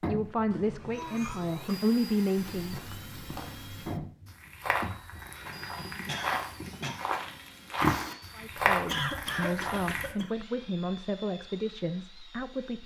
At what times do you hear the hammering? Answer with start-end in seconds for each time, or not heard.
not heard.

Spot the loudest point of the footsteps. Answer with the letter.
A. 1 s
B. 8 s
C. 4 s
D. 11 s
B.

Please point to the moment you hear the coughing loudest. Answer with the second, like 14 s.
9 s.